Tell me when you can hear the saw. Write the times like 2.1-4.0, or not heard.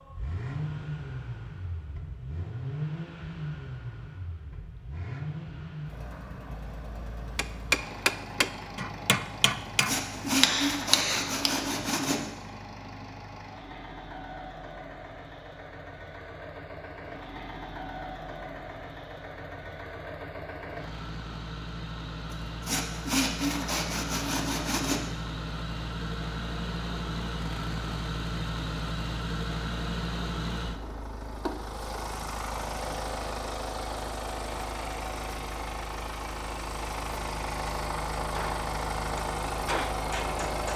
9.7-12.3, 22.3-25.1.